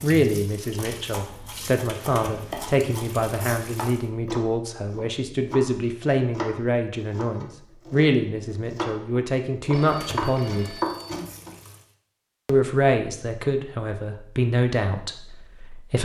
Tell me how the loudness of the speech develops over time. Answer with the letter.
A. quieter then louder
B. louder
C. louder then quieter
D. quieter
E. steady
E.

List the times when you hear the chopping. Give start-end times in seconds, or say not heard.
0.8-11.5.